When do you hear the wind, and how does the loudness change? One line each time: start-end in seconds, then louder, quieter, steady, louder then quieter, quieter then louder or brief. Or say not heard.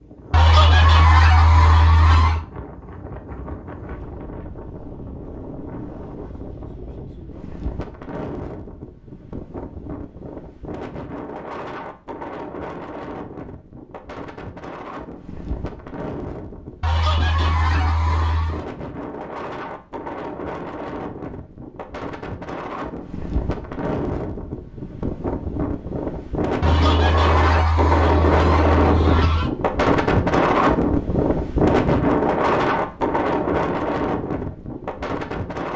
0.0-35.7 louder.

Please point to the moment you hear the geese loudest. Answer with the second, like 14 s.
1 s.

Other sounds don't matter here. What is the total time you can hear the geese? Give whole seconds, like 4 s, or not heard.
7 s.